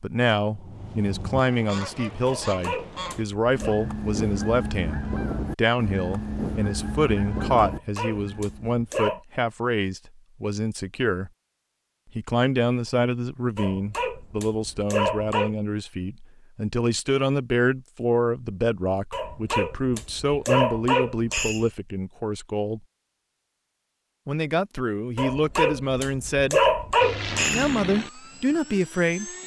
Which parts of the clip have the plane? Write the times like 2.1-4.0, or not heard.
27.0-29.4.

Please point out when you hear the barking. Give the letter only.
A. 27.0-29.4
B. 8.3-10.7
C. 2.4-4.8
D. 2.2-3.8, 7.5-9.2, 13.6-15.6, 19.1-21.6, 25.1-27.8
D.